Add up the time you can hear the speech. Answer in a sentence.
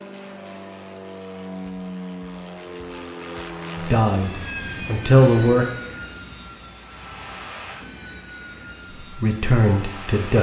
The speech can be heard for 3 seconds in total.